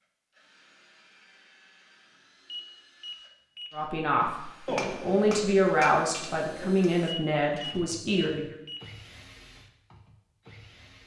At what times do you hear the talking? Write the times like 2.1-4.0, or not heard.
3.7-8.6.